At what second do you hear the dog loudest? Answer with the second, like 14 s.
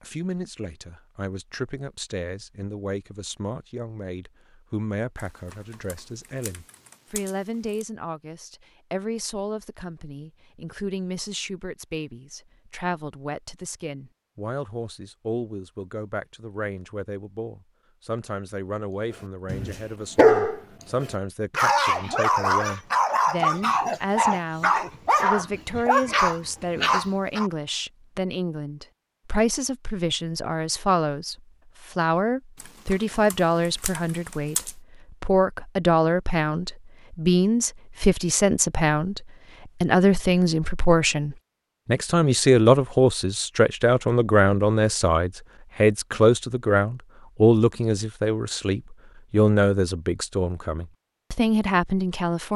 20 s.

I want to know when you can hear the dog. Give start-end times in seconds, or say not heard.
19.4-27.5.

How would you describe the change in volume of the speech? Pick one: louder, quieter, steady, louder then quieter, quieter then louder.
louder.